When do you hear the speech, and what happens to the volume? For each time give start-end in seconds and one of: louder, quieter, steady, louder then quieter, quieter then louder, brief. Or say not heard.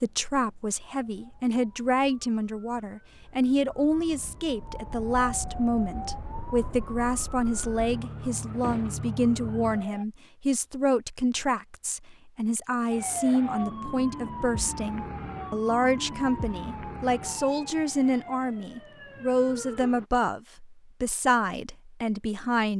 0.0-22.7 steady.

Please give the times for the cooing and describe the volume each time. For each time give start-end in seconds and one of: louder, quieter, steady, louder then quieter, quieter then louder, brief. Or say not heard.
not heard.